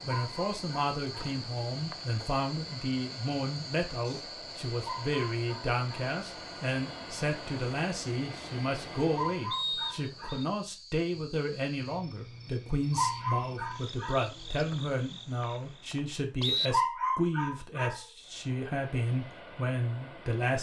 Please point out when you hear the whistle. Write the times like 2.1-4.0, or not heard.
1.2-2.0, 9.5-10.4, 14.7-16.7.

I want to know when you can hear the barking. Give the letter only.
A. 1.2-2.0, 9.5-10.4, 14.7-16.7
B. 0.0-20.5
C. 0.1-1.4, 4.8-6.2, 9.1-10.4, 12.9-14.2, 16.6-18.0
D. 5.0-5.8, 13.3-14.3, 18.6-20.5
C.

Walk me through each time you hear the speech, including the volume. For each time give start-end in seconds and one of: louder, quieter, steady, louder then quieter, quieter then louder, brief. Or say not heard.
0.0-20.5 steady.